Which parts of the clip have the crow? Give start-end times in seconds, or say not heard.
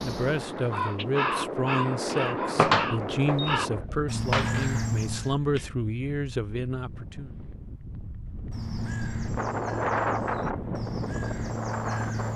0.0-5.3, 8.5-12.3.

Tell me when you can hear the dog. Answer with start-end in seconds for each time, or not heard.
not heard.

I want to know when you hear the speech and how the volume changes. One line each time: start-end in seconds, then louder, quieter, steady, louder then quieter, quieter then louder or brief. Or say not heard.
0.0-7.3 steady.